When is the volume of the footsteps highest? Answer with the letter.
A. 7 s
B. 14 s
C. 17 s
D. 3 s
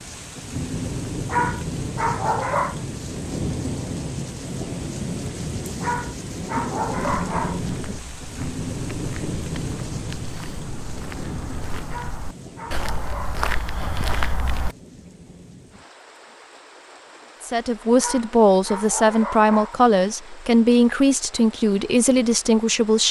B.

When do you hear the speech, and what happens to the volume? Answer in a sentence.
You can hear the speech from 17.4 to 23.0 s, at a steady volume.